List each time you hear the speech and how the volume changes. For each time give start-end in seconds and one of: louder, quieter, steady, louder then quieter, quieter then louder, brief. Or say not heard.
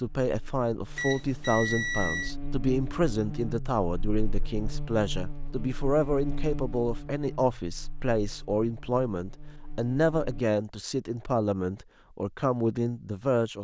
0.0-13.5 steady.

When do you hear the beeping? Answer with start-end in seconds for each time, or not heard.
0.9-2.4.